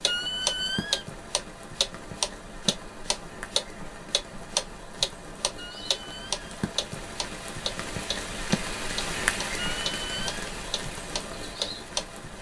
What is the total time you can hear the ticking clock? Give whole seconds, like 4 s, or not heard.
12 s.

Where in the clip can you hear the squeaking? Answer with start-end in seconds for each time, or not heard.
0.1-1.1, 5.5-6.5, 9.6-10.4.